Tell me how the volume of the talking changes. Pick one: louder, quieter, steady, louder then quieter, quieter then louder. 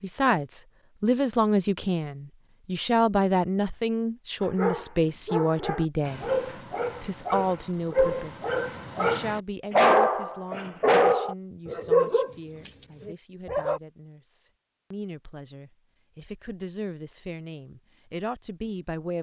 quieter then louder.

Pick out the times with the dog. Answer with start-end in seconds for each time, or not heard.
4.4-13.8.